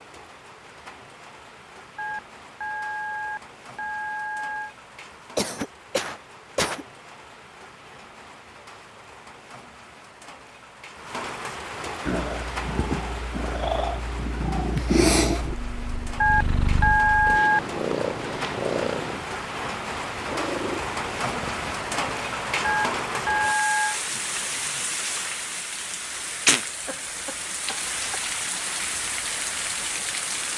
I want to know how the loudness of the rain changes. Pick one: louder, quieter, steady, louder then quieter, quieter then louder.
louder.